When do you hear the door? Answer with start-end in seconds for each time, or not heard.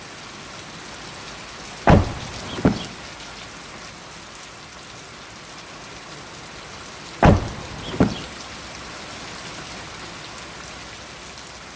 1.9-2.9, 7.2-8.2.